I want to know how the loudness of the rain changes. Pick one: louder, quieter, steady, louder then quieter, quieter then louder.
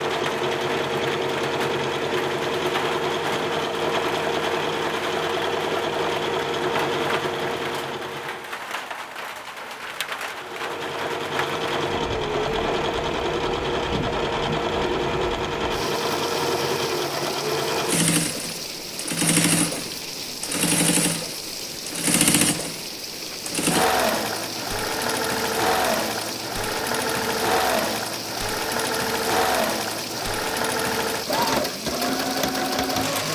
steady.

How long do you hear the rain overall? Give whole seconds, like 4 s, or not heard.
33 s.